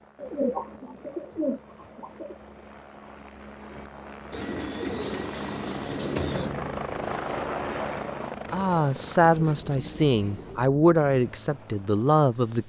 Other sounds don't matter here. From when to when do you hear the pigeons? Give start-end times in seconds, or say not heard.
0.1-2.4, 4.3-6.5, 8.5-10.7.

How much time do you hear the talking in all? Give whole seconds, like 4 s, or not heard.
4 s.